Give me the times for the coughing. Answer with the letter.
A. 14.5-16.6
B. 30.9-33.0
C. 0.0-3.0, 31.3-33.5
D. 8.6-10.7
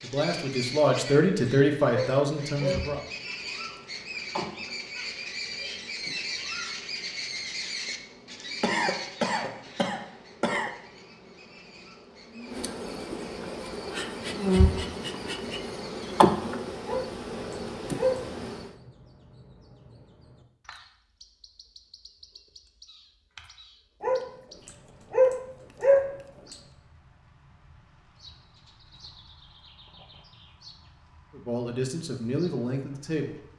D.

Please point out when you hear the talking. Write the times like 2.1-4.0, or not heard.
0.0-3.0, 31.3-33.5.